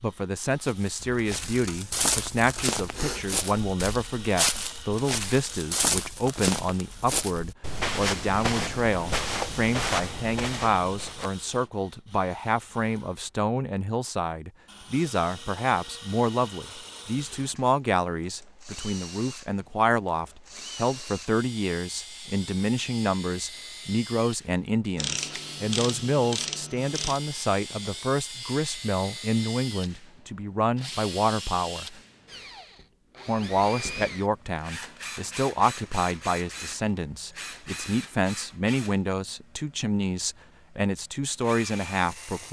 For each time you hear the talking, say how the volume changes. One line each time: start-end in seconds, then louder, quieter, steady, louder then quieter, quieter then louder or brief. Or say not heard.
0.0-32.0 steady
33.2-42.4 steady.